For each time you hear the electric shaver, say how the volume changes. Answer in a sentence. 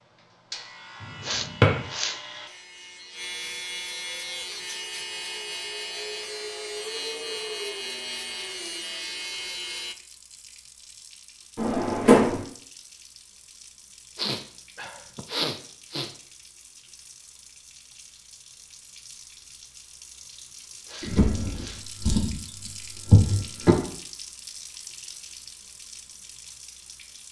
You can hear the electric shaver from 0.0 to 9.9 s, getting louder.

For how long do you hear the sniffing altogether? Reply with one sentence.
You can hear the sniffing for 4 seconds altogether.